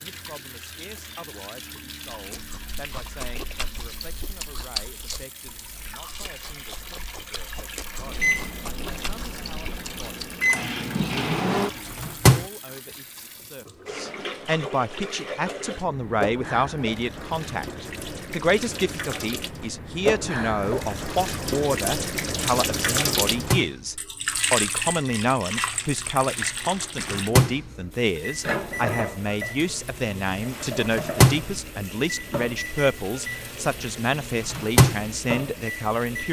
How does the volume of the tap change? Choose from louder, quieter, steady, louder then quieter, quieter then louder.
louder then quieter.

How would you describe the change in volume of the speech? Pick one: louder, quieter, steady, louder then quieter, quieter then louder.
louder.